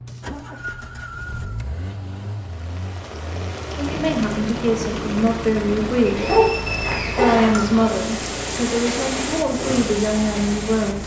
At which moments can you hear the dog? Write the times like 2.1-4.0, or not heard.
6.2-7.8.